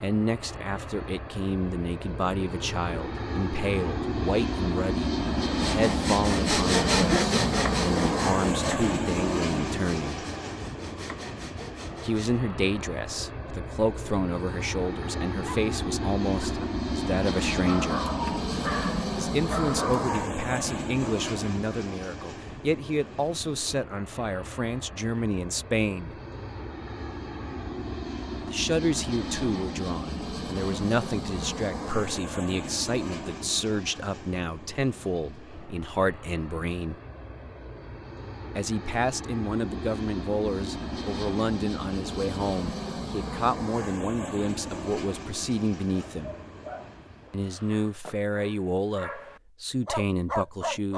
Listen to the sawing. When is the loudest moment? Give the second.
7 s.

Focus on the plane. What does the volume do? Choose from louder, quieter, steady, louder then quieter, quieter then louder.
quieter.